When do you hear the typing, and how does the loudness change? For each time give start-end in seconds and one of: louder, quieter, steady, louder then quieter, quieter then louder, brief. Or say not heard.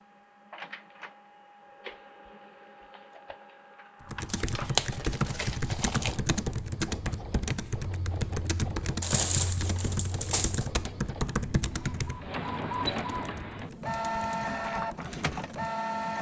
4.0-15.7 quieter.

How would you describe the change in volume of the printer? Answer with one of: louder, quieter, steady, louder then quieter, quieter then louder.
louder.